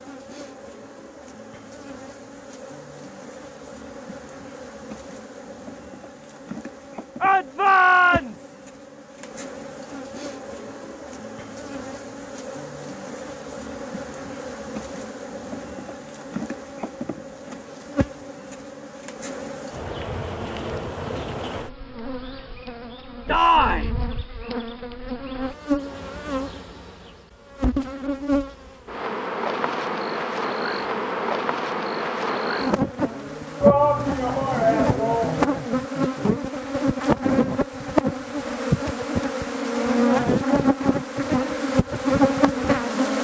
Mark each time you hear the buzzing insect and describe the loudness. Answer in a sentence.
You can hear the buzzing insect from 0.0 to 43.2 s, getting louder.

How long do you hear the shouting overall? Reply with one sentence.
You can hear the shouting for 4 seconds altogether.